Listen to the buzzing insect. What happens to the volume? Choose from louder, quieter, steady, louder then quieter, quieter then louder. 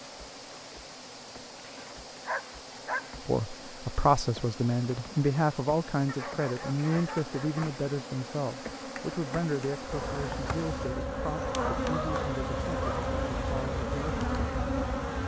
louder.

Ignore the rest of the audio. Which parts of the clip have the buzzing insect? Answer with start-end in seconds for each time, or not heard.
0.0-15.2.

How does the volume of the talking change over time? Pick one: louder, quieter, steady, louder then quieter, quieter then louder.
quieter.